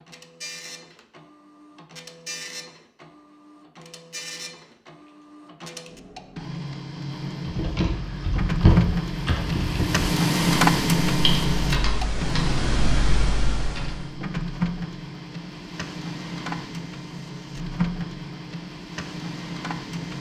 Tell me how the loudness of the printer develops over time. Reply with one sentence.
The loudness of the printer goes up, then down.